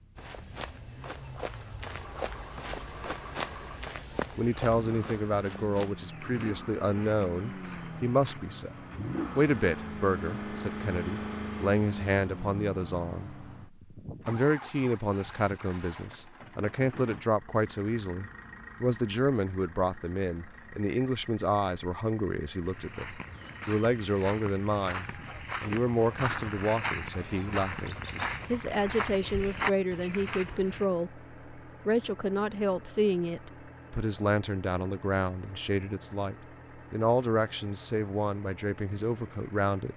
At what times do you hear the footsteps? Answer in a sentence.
You can hear the footsteps from 0.1 to 8.4 s and from 22.6 to 30.9 s.